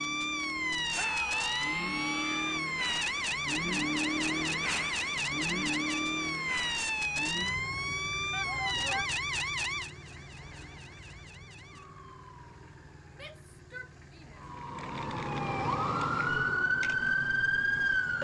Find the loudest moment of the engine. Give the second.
4 s.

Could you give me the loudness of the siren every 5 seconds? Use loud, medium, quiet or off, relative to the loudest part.
loud, loud, quiet, loud.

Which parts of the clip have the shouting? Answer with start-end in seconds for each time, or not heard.
0.9-2.6, 8.3-9.1, 13.1-14.4.